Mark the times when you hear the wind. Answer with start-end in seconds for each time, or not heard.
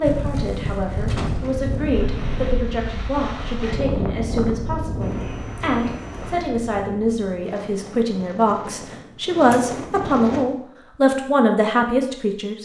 0.0-10.4.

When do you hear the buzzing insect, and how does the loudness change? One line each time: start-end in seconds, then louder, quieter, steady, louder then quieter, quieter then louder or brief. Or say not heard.
not heard.